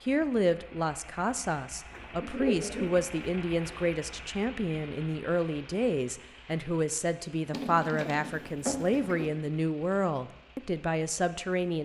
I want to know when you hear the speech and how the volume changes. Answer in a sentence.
You can hear the speech from 0.0 to 11.8 s, at a steady volume.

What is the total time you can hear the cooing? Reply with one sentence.
The cooing can be heard for 4 seconds in total.